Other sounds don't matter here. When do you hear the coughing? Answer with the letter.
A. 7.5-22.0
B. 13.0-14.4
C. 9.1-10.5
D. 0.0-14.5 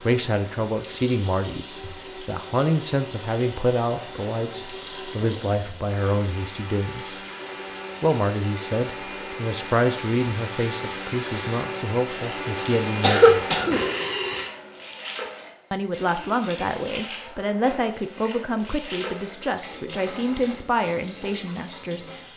B.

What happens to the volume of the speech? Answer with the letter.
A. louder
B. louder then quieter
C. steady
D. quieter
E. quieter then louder
C.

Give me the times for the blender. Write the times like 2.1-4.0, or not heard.
0.0-14.5.